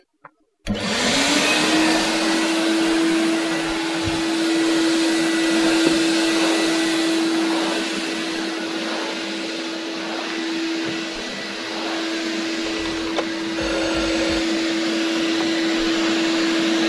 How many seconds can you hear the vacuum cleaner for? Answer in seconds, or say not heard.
16 s.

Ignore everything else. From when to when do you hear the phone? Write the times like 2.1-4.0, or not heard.
0.8-2.1, 12.7-14.4.